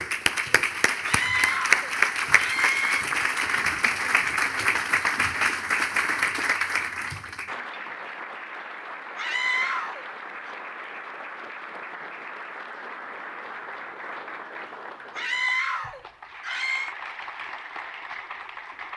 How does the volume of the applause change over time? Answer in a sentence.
The volume of the applause goes down.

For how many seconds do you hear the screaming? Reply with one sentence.
You can hear the screaming for 5 seconds altogether.